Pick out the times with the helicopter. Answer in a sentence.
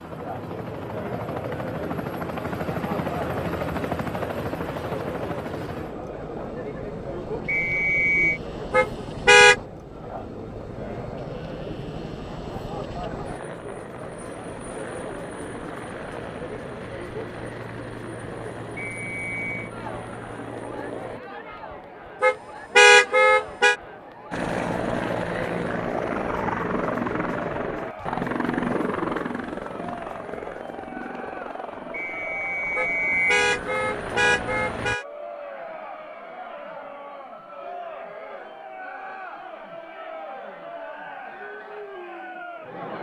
You can hear the helicopter from 0.0 to 21.2 s and from 24.3 to 35.0 s.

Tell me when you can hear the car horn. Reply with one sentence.
You can hear the car horn from 8.7 to 9.6 s, from 22.2 to 23.8 s and from 32.8 to 35.0 s.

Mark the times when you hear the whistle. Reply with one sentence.
The whistle can be heard from 7.5 to 8.4 s, from 18.8 to 19.7 s and from 31.9 to 33.5 s.